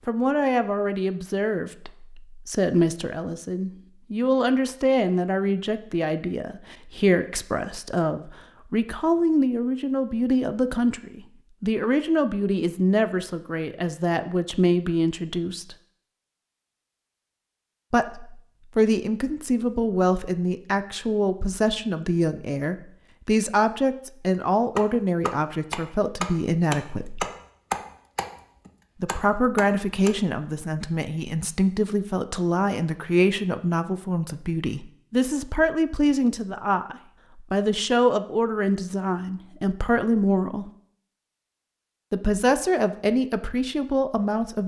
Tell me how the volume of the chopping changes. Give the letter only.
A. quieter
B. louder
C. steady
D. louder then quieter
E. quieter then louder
D.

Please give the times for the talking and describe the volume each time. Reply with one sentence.
You can hear the talking from 0.1 to 15.8 s, at a steady volume; from 17.9 to 27.2 s, at a steady volume; from 29.0 to 40.7 s, at a steady volume; and briefly from 42.1 to 44.6 s.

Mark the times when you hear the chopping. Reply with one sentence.
You can hear the chopping from 24.8 to 30.1 s.